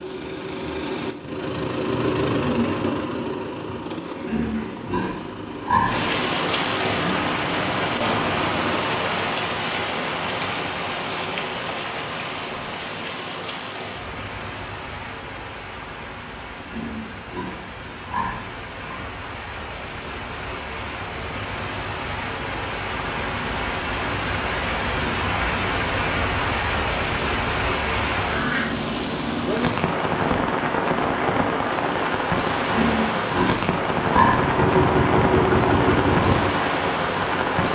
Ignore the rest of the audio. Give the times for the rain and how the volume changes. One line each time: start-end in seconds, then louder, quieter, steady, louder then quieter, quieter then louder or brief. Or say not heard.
5.8-37.7 quieter then louder.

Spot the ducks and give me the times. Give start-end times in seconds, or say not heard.
not heard.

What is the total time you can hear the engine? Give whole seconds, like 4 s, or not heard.
12 s.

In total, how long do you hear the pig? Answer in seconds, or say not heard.
7 s.